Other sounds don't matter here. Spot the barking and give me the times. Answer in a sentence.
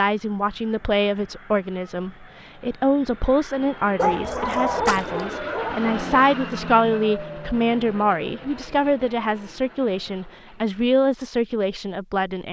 The barking can be heard from 4.0 to 6.2 s.